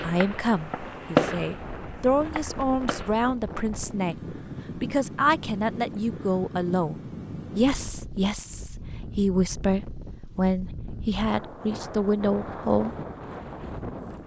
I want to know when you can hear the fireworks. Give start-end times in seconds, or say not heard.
0.0-3.1.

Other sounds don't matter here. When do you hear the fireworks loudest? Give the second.
1 s.